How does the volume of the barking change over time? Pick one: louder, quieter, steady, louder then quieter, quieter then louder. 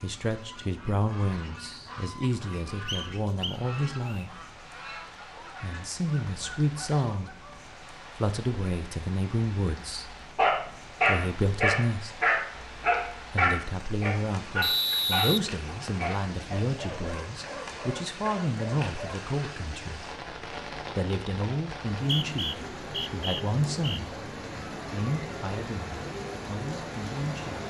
quieter.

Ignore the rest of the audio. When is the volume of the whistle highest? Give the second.
15 s.